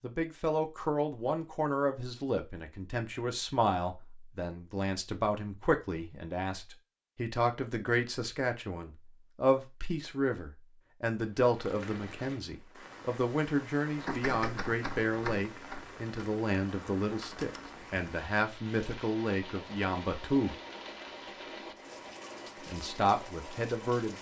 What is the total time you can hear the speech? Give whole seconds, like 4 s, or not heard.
22 s.